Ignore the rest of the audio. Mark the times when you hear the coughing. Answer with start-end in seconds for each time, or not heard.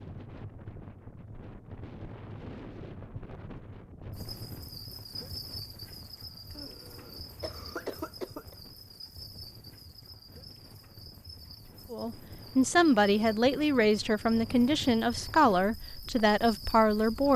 6.5-8.6.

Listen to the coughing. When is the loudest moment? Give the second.
8 s.